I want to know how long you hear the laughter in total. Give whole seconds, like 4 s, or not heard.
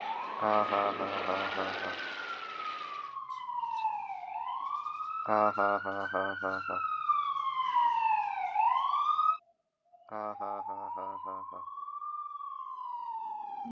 5 s.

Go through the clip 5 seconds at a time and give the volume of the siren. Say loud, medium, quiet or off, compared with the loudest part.
medium, loud, medium.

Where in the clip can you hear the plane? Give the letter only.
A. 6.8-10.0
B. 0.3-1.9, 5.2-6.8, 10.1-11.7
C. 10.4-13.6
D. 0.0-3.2
D.